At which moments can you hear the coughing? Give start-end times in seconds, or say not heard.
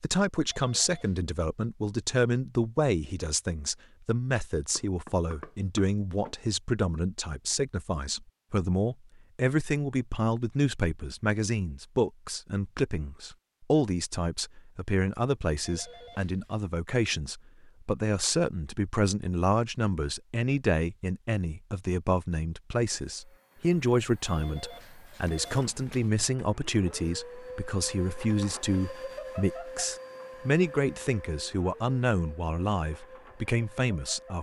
not heard.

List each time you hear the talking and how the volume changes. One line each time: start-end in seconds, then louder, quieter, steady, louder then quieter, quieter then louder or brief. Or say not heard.
0.0-34.3 steady.